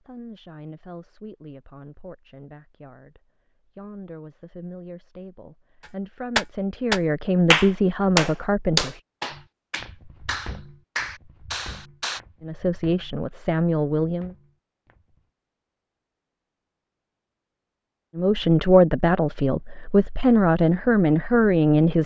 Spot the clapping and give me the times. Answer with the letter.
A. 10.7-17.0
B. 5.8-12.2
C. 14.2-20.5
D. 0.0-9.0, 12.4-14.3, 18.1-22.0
B.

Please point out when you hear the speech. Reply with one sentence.
You can hear the speech from 0.0 to 9.0 s, from 12.4 to 14.3 s and from 18.1 to 22.0 s.